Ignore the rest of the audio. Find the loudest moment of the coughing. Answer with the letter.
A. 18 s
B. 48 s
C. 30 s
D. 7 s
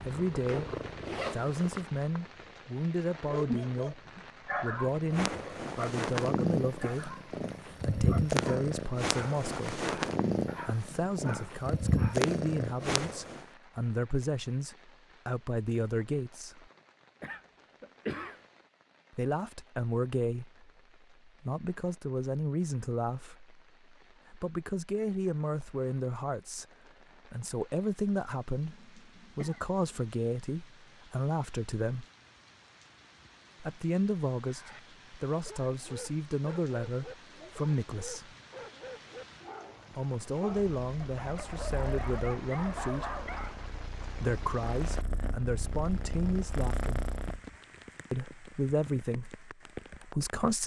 A.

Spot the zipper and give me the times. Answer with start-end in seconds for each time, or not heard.
0.5-1.9.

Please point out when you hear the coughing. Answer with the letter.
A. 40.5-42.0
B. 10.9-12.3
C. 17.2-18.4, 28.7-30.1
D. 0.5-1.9
C.